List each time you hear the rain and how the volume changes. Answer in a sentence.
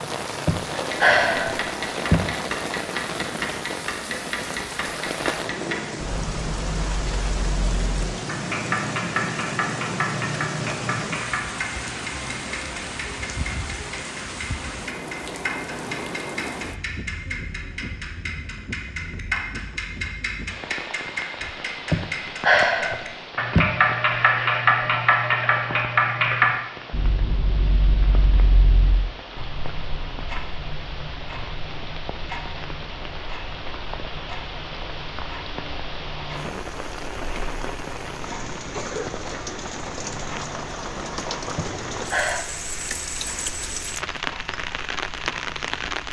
The rain can be heard from 0.0 to 46.0 s, getting quieter then louder.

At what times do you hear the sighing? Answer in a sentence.
You can hear the sighing from 0.5 to 2.2 s, from 21.9 to 23.6 s and from 41.5 to 42.5 s.